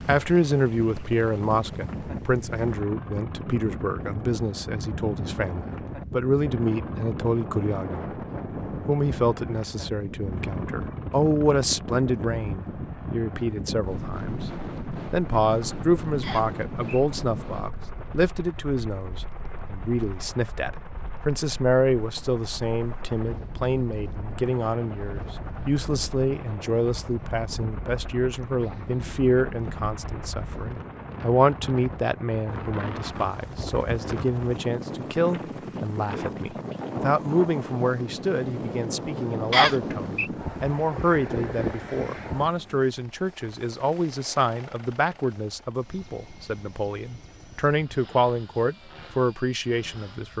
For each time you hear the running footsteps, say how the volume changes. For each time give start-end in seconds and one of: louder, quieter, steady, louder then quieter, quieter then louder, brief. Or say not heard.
not heard.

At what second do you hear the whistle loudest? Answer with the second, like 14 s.
40 s.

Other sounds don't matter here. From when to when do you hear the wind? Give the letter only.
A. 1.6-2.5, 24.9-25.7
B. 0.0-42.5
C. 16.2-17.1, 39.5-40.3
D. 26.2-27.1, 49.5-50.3
B.